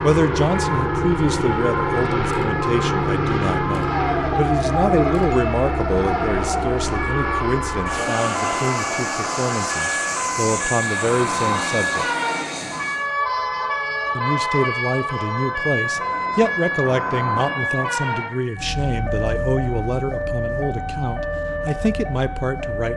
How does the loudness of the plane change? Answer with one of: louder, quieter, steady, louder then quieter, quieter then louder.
quieter.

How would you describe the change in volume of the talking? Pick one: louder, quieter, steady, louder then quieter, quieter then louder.
steady.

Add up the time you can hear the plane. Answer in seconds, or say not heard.
13 s.